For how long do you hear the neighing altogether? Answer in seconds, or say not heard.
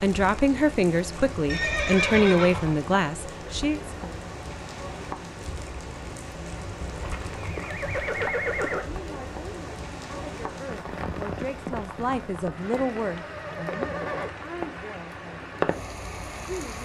5 s.